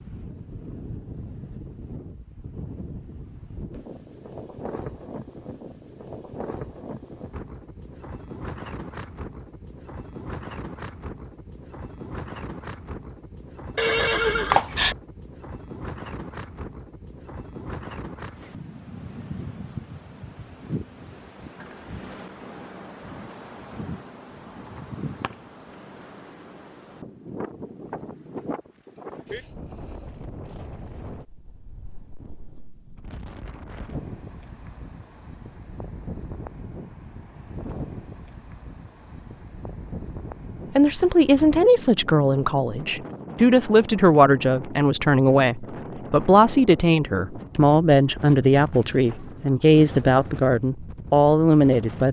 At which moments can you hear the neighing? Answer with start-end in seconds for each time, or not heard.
13.8-14.9.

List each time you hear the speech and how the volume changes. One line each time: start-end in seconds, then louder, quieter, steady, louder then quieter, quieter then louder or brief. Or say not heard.
40.8-52.0 steady.